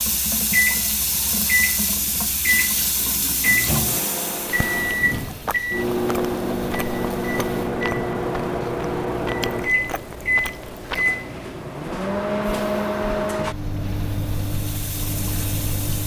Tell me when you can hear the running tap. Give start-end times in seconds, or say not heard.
0.0-7.7, 12.5-16.0.